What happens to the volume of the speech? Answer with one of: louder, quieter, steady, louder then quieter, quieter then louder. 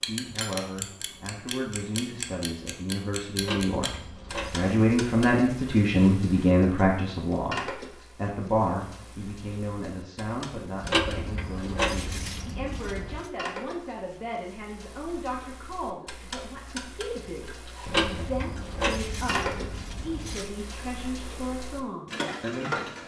louder then quieter.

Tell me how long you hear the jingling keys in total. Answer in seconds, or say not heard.
7 s.